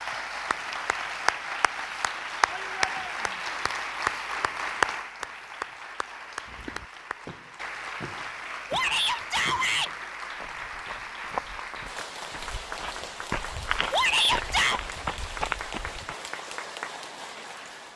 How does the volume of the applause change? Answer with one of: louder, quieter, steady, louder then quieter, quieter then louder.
quieter.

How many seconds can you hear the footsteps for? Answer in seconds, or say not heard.
10 s.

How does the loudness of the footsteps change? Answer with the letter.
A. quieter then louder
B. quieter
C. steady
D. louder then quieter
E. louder
E.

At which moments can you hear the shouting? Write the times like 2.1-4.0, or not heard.
2.5-3.4, 8.7-9.9, 13.9-14.8.